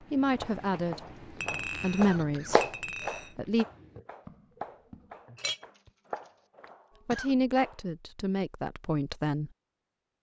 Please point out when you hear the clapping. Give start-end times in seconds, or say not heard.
0.0-7.8.